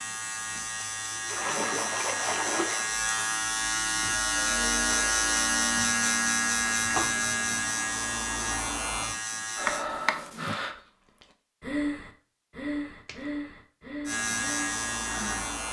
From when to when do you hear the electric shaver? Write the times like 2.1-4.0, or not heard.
0.0-9.8, 14.1-15.6.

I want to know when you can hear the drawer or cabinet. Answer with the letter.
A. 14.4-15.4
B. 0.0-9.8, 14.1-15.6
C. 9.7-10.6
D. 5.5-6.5
C.